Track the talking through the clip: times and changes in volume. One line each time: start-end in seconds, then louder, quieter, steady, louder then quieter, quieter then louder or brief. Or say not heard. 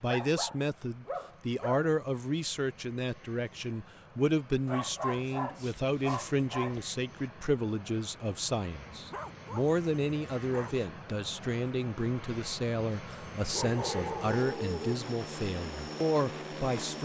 0.0-16.9 steady.